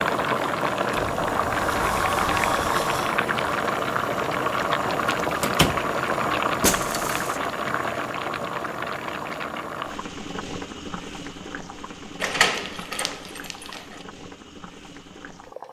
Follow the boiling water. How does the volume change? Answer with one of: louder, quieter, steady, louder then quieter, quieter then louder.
quieter.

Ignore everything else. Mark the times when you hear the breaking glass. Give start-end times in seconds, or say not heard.
6.6-7.4.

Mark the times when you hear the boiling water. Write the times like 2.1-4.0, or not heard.
0.0-15.6.